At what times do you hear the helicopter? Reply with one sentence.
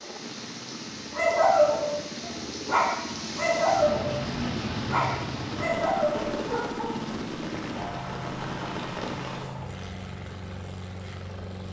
The helicopter can be heard from 0.0 to 11.6 s.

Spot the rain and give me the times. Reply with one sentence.
You can hear the rain from 0.0 to 9.6 s.